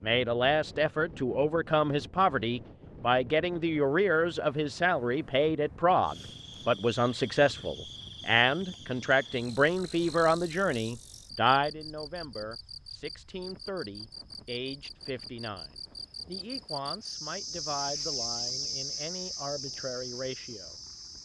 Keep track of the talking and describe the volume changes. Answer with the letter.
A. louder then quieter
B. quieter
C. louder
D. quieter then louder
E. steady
B.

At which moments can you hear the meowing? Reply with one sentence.
The meowing can't be heard in this clip.